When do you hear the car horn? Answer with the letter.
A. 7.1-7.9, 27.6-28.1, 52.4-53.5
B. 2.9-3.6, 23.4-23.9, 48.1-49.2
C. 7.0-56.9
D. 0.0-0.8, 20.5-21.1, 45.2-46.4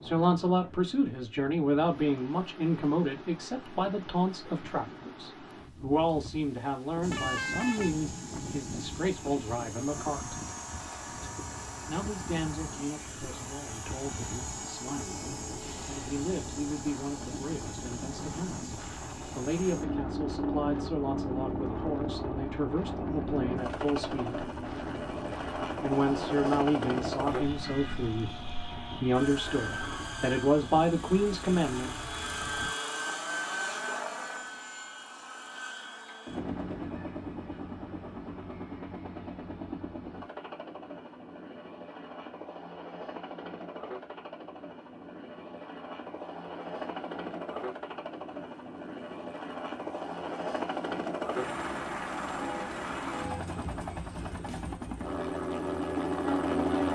A.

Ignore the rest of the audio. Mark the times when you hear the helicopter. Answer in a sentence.
The helicopter can be heard from 7.0 to 56.9 s.